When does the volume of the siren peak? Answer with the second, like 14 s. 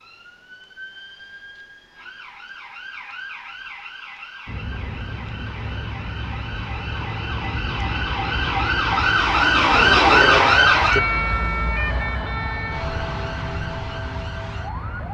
10 s.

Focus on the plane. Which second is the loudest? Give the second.
10 s.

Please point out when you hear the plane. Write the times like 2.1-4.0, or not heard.
4.5-15.0.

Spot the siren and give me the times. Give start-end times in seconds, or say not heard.
0.0-15.0.